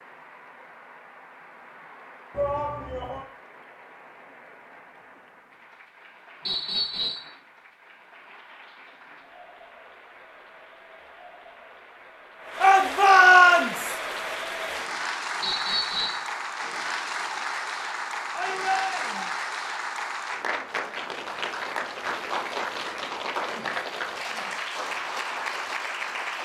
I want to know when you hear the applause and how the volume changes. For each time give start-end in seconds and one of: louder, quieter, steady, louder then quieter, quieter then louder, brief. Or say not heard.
0.0-26.4 louder.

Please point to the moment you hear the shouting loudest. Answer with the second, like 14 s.
13 s.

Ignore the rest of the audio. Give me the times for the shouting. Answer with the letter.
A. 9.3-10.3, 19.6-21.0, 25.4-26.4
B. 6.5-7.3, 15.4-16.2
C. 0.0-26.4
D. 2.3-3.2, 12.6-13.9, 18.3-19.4
D.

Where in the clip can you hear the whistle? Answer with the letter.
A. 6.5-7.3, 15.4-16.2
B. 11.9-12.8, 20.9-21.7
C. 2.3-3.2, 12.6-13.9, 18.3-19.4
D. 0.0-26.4
A.